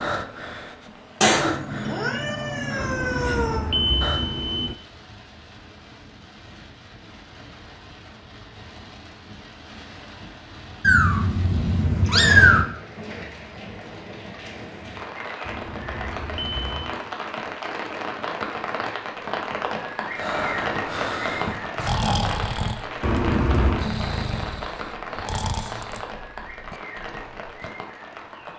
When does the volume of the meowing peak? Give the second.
12 s.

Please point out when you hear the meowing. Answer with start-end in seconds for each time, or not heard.
1.2-3.7, 10.8-12.7, 21.4-22.1.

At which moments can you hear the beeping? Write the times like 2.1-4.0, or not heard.
2.8-4.8, 15.4-17.0, 23.0-23.9.